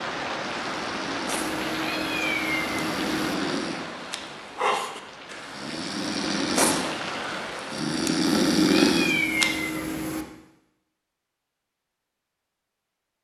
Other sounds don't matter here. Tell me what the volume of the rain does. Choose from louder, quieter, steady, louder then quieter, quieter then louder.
quieter then louder.